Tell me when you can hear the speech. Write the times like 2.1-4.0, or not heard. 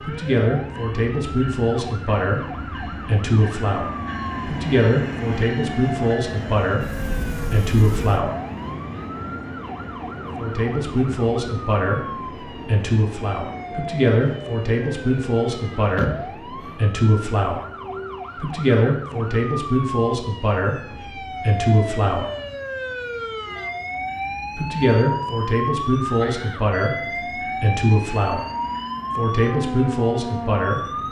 0.0-8.4, 10.3-17.6, 18.4-22.3, 24.6-28.4, 29.1-31.0.